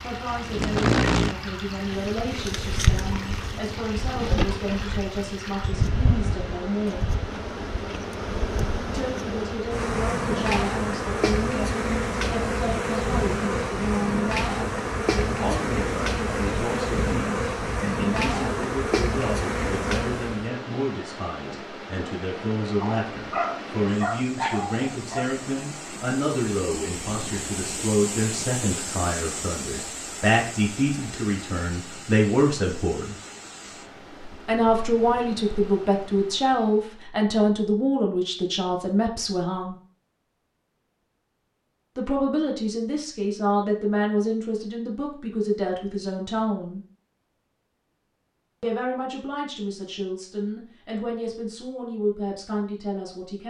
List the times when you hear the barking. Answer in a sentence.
The barking can be heard from 22.6 to 25.3 s.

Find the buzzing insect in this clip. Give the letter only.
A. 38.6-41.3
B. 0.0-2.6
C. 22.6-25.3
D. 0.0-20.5
D.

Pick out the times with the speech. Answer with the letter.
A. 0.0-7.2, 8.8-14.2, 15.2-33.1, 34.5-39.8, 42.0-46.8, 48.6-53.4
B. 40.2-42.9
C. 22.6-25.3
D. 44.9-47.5
A.